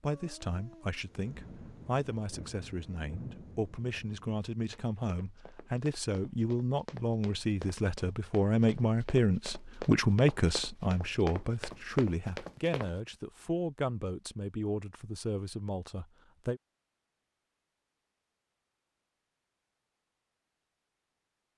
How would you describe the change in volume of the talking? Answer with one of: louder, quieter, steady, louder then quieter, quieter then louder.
louder then quieter.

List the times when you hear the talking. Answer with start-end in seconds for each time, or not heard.
0.0-16.6.